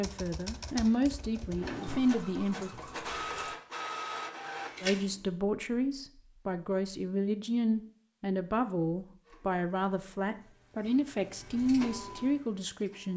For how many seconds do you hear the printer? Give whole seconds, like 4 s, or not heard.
8 s.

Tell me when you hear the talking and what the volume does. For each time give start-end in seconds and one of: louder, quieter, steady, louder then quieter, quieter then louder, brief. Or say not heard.
0.0-2.7 brief
4.8-13.1 steady.